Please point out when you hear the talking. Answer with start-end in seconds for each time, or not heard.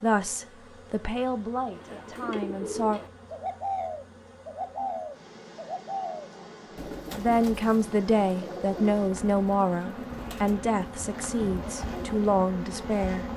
0.0-3.0, 7.1-13.2.